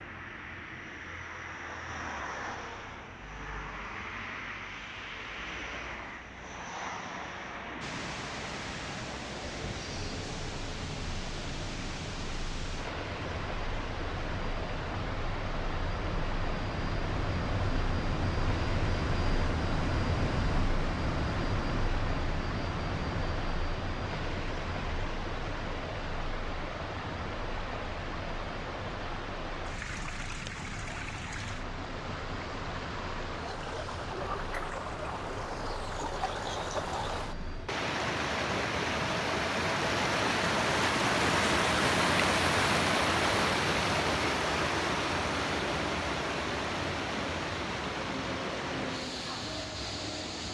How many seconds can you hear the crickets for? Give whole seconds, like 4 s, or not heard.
not heard.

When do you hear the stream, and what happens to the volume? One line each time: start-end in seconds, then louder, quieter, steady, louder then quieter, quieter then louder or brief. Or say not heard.
7.8-50.5 louder.